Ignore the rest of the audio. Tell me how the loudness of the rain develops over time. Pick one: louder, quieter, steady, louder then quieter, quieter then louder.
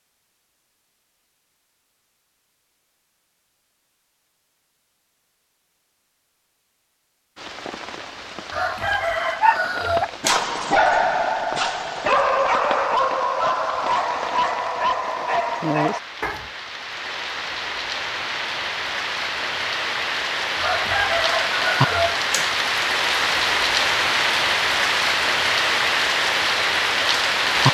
louder.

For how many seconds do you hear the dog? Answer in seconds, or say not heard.
7 s.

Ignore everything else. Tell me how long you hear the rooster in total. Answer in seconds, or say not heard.
4 s.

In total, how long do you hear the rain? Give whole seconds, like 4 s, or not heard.
20 s.